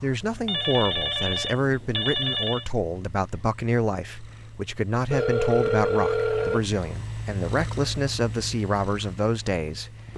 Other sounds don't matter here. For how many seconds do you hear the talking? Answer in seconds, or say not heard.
10 s.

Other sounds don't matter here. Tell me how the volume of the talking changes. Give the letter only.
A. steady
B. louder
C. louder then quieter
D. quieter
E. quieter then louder
A.